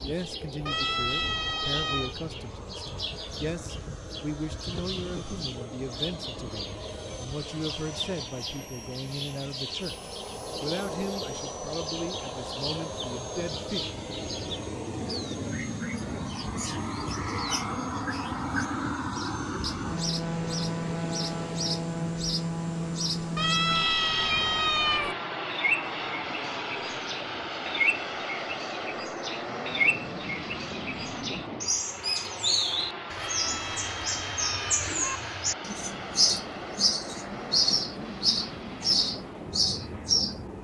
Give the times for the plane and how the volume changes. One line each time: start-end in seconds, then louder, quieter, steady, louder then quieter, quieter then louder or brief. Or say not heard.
0.0-40.5 louder then quieter.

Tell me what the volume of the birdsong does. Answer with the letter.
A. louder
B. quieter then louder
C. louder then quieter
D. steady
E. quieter
A.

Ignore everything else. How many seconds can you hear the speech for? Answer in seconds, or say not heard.
14 s.